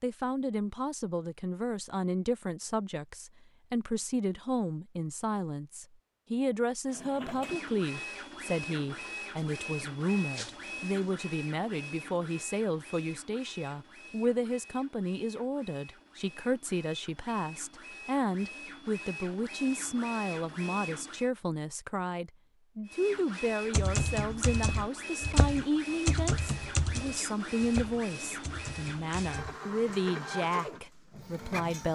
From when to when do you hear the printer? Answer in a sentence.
You can hear the printer from 6.8 to 21.3 s and from 22.9 to 31.9 s.